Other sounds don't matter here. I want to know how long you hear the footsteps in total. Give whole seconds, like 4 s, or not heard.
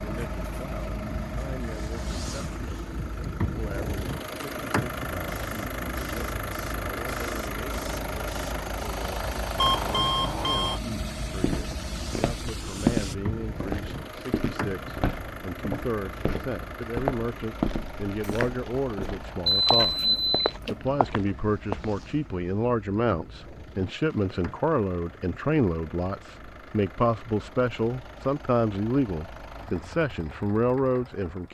11 s.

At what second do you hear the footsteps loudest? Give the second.
13 s.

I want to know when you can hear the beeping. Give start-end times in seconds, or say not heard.
9.6-10.8, 18.2-20.8.